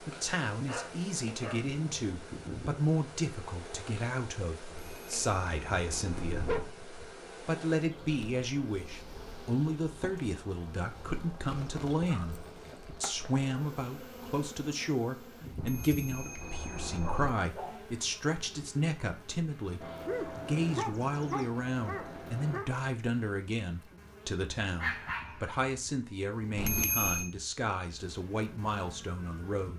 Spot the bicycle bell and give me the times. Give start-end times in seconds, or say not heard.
4.7-6.7, 15.6-17.3, 26.6-27.3.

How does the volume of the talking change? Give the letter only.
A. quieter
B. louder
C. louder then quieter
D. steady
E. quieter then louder
D.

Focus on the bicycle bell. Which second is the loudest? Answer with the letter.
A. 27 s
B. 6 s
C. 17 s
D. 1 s
A.